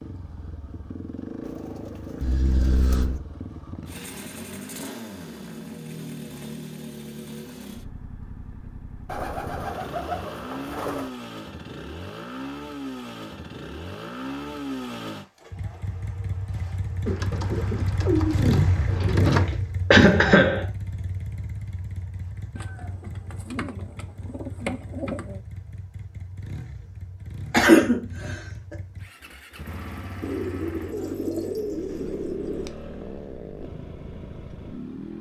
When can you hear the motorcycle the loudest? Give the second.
19 s.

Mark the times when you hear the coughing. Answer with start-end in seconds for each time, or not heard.
2.2-3.2, 19.9-20.6, 27.5-28.4.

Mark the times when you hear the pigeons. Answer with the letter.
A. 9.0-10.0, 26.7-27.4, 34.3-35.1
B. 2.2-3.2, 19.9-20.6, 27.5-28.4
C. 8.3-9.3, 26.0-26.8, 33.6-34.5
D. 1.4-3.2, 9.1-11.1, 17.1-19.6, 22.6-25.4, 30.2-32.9
D.